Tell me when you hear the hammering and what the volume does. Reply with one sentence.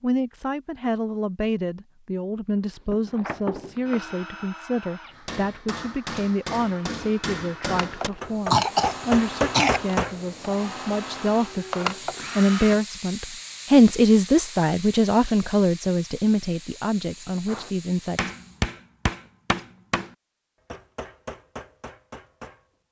You can hear the hammering from 5.1 to 10.2 s, getting louder; and from 17.4 to 22.6 s, getting quieter.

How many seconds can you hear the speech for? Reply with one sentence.
The speech can be heard for 18 seconds in total.